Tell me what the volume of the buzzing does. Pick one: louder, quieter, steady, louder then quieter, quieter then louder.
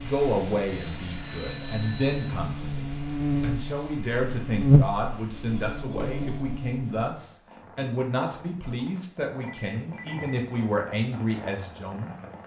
louder then quieter.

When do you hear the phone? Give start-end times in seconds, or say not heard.
0.7-2.4, 5.7-6.4, 9.4-10.5.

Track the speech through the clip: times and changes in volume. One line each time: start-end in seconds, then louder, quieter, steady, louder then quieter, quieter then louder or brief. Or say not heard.
0.0-12.2 steady.